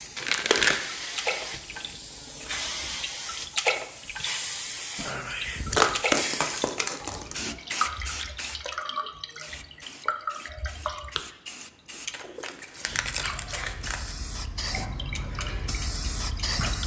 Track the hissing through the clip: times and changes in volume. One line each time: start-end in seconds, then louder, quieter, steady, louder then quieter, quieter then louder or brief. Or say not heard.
0.0-16.8 quieter then louder.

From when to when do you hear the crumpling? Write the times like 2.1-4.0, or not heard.
0.1-0.8, 5.7-7.3, 12.1-14.2.